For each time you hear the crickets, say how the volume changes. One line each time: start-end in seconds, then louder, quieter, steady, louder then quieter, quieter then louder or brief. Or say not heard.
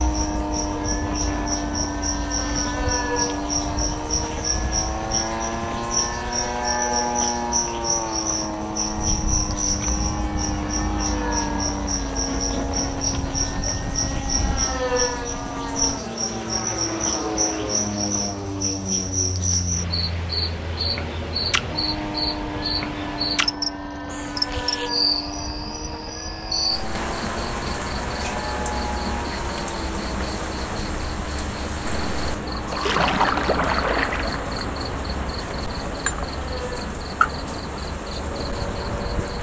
0.0-39.3 steady.